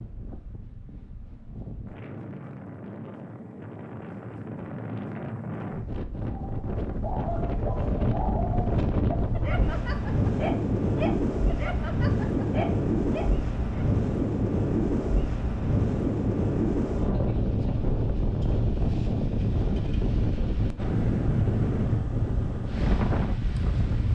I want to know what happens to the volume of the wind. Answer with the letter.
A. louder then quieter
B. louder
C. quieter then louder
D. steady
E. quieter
B.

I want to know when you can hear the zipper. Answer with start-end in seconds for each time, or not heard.
not heard.